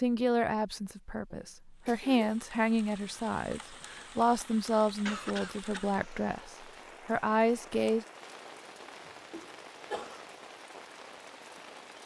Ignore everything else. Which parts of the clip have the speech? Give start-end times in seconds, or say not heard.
0.0-8.1.